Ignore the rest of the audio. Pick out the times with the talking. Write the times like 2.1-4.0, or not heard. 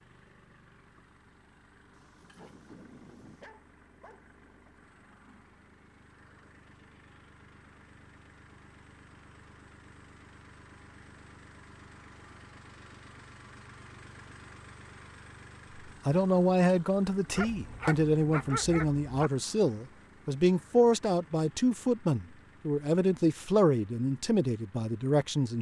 16.1-25.5.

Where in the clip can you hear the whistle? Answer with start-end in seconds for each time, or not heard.
not heard.